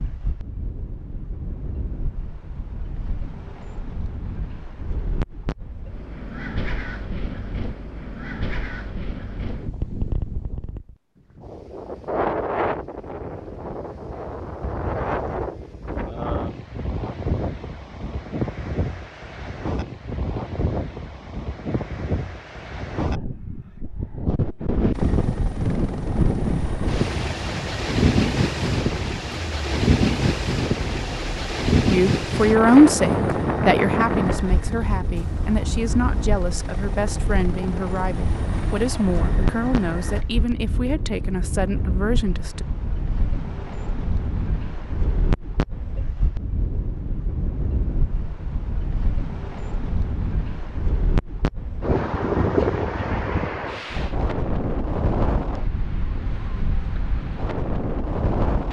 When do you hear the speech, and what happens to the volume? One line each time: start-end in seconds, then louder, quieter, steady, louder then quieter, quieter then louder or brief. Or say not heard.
31.9-42.6 quieter.